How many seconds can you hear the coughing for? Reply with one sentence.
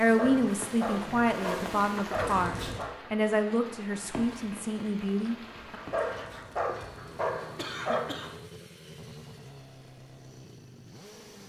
The coughing can be heard for 3 seconds in total.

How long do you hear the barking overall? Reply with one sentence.
The barking can be heard for 5 seconds in total.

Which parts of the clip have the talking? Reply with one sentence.
The talking can be heard from 0.0 to 5.8 s.